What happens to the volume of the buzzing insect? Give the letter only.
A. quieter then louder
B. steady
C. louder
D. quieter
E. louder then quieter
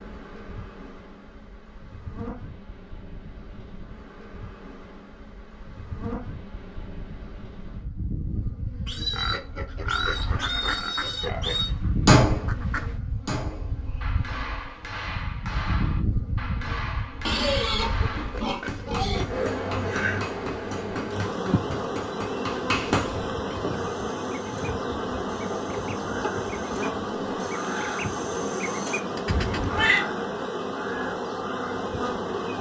C.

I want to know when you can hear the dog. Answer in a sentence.
You can't hear the dog here.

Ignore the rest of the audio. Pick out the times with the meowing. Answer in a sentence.
You can hear the meowing from 29.2 to 30.1 s.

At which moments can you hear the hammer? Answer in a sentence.
The hammer can be heard from 12.1 to 23.6 s.